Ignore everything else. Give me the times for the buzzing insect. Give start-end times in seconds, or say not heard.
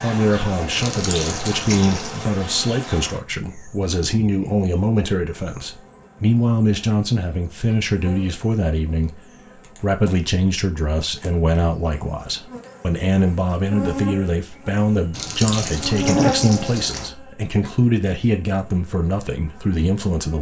0.0-20.3.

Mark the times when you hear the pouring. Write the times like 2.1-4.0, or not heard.
0.8-2.2, 15.1-17.1.